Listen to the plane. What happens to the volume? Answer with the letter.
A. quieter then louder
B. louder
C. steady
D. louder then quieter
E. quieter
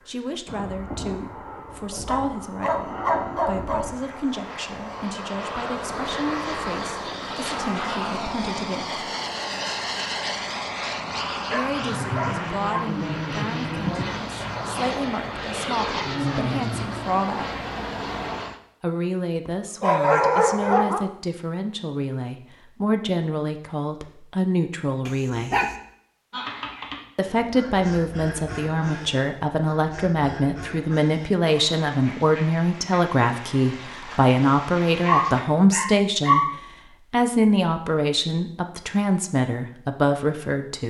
B.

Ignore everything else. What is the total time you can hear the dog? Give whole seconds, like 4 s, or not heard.
8 s.